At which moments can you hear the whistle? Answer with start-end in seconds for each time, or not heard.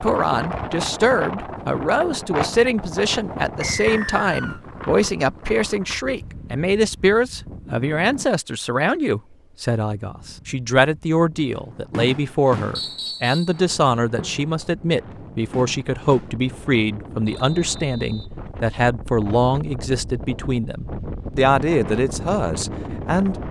3.6-4.6, 12.8-13.6, 17.3-18.3.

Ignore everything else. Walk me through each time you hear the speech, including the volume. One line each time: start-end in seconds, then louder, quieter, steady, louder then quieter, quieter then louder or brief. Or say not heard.
0.0-23.4 steady.